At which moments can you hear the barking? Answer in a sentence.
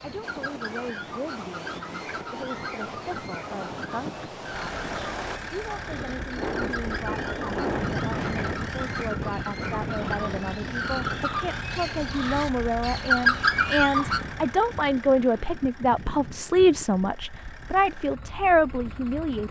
You can't hear the barking here.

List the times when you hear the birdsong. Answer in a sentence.
You can hear the birdsong from 0.0 to 14.2 s.